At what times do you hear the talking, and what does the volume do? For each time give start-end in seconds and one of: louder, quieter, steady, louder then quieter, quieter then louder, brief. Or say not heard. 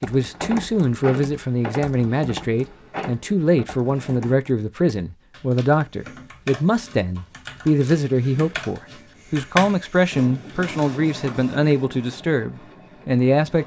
0.0-13.6 steady.